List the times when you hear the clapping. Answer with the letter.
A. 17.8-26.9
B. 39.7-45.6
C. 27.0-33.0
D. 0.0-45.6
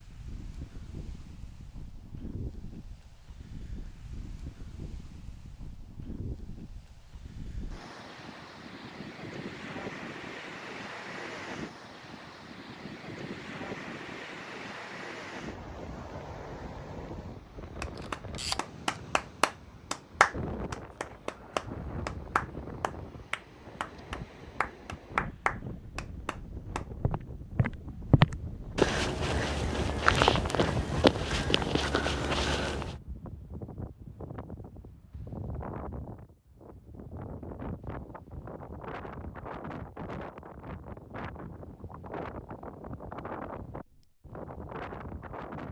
A.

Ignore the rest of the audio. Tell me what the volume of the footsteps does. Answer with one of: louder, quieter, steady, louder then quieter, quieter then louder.
quieter.